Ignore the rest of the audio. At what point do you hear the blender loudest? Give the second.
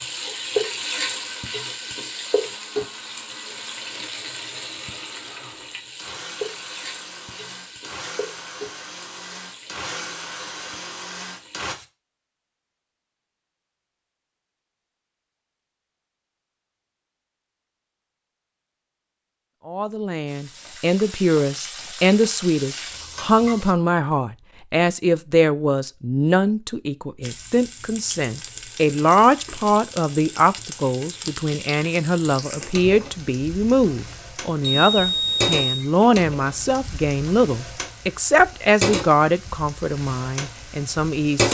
10 s.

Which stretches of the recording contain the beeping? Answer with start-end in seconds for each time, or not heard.
34.6-35.9.